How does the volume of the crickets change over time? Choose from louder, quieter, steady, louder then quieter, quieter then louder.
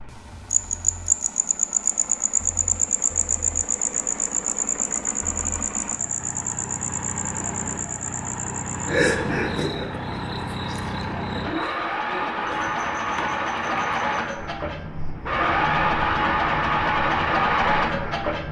quieter.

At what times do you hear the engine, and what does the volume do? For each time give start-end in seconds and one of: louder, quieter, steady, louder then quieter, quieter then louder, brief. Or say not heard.
0.0-18.4 louder.